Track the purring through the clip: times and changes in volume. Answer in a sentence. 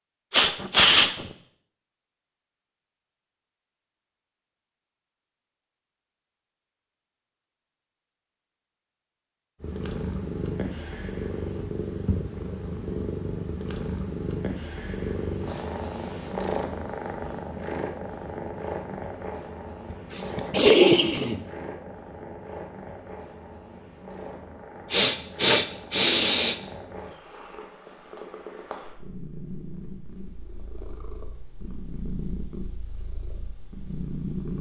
The purring can be heard from 9.6 to 34.5 s, getting quieter.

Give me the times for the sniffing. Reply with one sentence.
The sniffing can be heard from 0.3 to 1.2 s, from 19.9 to 21.4 s and from 24.9 to 26.6 s.